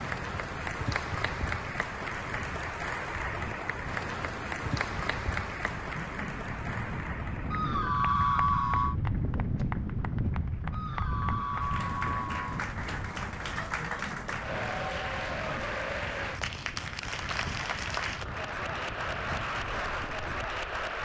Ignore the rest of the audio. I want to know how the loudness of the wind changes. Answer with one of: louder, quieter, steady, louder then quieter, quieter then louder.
louder then quieter.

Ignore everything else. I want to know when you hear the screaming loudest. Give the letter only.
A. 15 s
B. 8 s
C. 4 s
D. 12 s
B.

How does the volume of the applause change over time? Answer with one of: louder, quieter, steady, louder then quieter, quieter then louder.
quieter then louder.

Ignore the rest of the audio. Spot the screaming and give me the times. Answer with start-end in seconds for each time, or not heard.
7.5-8.9, 10.7-12.4.